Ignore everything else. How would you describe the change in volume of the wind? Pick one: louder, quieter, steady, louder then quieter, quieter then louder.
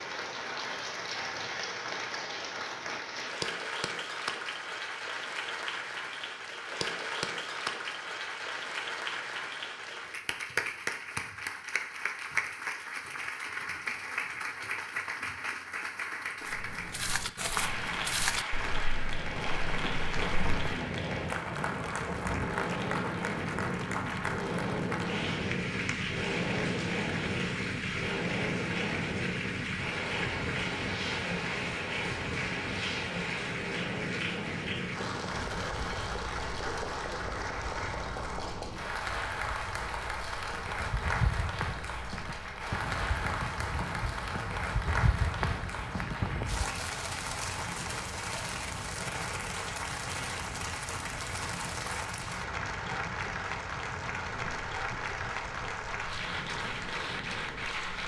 quieter.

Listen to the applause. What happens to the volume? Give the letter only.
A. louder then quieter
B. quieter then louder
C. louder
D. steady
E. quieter
D.